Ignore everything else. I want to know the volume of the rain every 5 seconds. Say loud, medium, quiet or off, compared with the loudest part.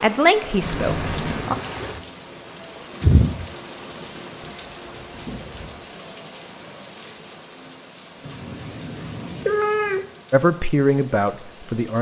loud, quiet, quiet.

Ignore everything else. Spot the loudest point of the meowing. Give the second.
10 s.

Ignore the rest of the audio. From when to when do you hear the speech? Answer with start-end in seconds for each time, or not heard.
0.0-1.6, 10.3-11.9.